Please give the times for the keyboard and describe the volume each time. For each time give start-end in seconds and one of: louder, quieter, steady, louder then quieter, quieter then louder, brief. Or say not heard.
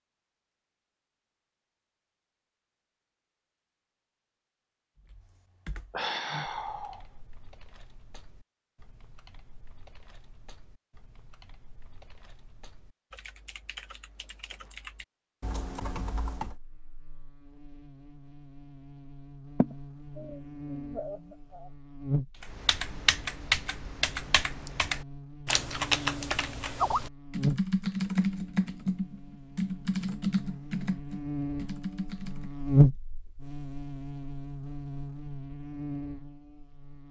5.0-16.6 quieter then louder
22.4-32.5 steady.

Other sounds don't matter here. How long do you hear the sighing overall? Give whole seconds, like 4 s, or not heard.
3 s.